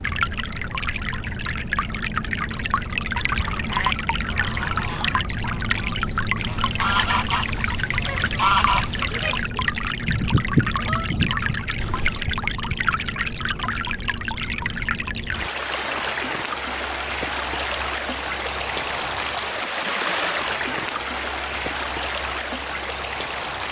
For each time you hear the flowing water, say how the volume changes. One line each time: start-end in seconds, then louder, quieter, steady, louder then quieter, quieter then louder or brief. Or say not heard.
0.0-23.6 steady.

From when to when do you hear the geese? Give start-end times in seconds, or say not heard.
3.5-12.2.